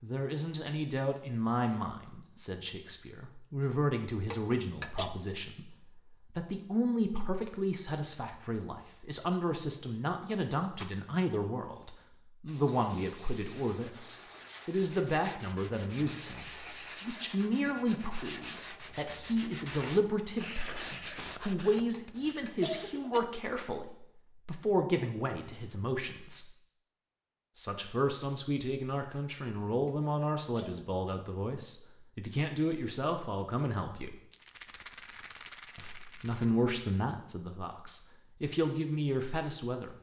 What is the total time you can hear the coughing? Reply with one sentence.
The coughing can be heard for 3 seconds in total.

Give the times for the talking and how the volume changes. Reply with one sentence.
The talking can be heard from 0.0 to 26.5 s, at a steady volume; from 27.6 to 34.1 s, at a steady volume; and from 35.8 to 39.9 s, getting quieter then louder.